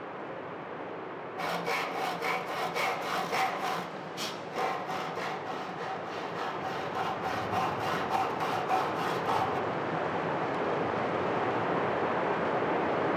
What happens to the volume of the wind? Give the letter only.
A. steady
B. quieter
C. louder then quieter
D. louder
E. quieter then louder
D.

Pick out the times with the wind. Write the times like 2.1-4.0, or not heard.
0.0-13.1.